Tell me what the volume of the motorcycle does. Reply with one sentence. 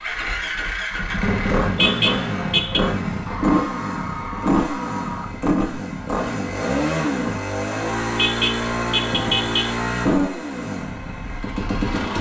The volume of the motorcycle stays about the same.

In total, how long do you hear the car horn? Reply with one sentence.
You can hear the car horn for 3 seconds altogether.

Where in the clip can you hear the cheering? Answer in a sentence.
The cheering can be heard from 3.2 to 5.3 s.